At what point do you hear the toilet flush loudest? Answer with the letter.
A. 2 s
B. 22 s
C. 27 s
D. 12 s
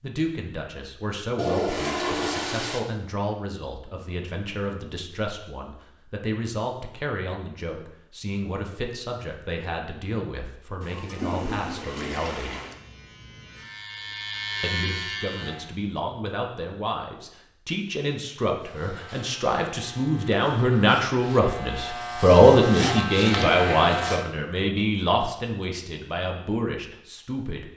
A.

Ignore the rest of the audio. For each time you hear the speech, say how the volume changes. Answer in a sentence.
You can hear the speech from 0.0 to 12.6 s, at a steady volume; and from 14.6 to 27.7 s, getting louder then quieter.